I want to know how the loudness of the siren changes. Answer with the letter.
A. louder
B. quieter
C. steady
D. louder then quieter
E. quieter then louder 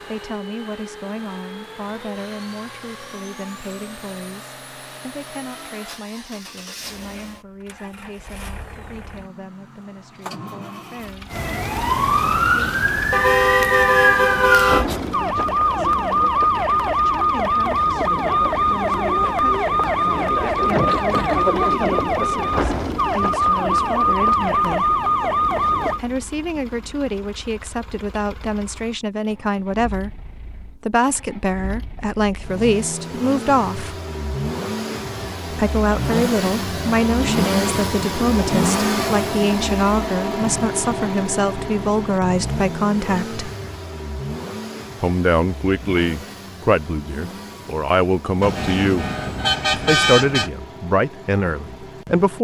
C.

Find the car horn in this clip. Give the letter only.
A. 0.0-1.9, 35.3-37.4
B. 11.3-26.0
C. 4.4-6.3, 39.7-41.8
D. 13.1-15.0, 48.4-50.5
D.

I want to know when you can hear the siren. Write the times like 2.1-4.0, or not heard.
11.3-26.0.